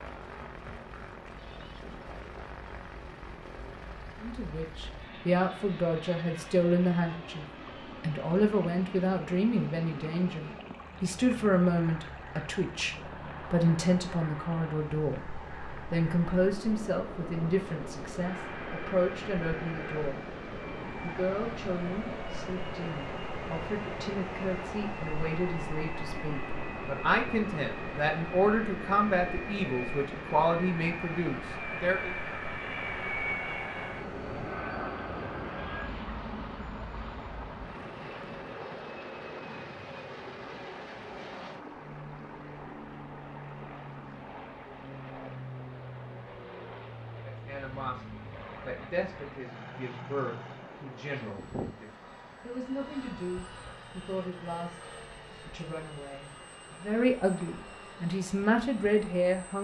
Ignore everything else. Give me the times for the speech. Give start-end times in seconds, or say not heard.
4.2-20.4, 21.0-32.1, 47.2-59.5.